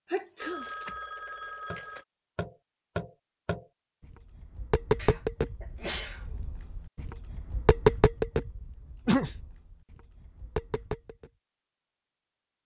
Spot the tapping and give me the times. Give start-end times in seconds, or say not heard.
1.7-11.3.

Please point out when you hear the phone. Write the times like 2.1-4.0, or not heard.
0.4-2.0.